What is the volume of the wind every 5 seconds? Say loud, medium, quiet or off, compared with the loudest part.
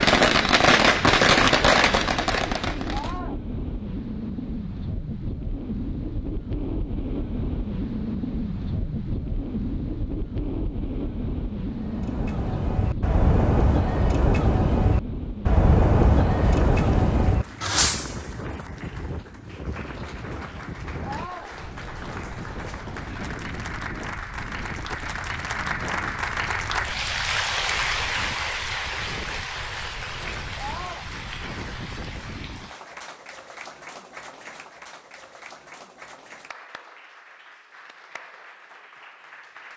loud, loud, loud, medium, medium, medium, medium, off.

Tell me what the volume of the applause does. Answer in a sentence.
The loudness of the applause goes up, then down.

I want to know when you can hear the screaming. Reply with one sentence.
You can hear the screaming from 2.9 to 3.4 s, from 21.0 to 21.5 s and from 30.6 to 31.1 s.